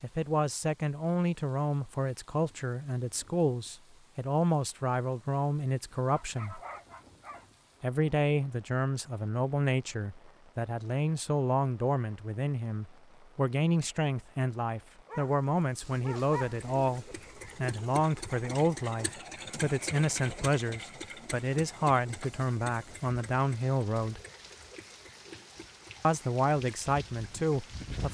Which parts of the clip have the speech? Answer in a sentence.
The speech can be heard from 0.0 to 6.6 s, from 7.8 to 24.2 s and from 26.0 to 28.0 s.